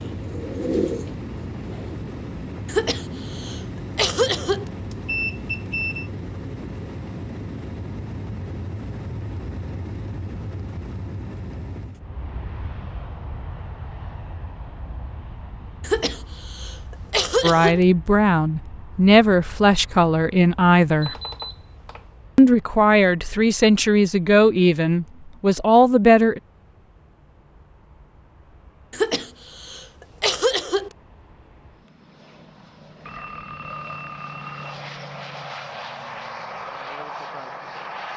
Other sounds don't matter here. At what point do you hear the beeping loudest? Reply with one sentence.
The volume of the beeping peaks at 5 seconds.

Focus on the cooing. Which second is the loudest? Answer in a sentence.
The volume of the cooing peaks at 1 second.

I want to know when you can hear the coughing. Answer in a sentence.
The coughing can be heard from 2.6 to 4.7 s, from 15.8 to 17.8 s and from 28.9 to 30.9 s.